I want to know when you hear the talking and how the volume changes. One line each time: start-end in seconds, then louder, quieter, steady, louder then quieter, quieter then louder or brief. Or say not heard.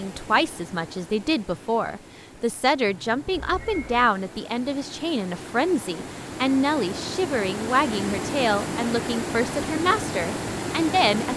0.0-11.3 steady.